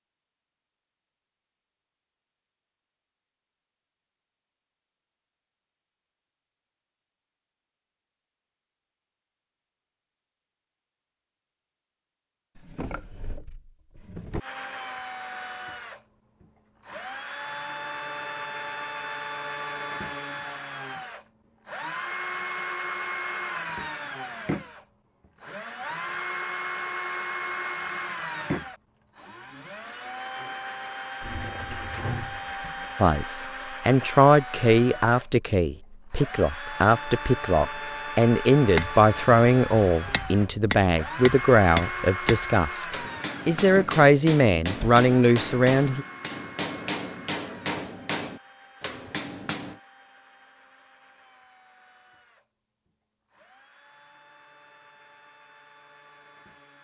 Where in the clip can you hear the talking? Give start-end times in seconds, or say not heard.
33.0-42.9, 43.5-46.0.